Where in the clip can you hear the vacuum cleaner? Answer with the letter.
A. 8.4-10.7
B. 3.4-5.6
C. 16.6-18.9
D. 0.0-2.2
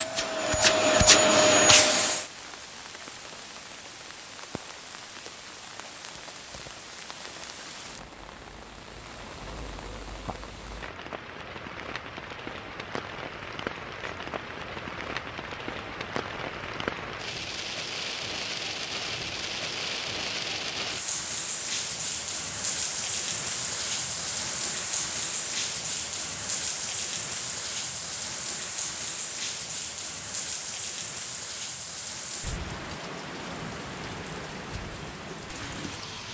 D.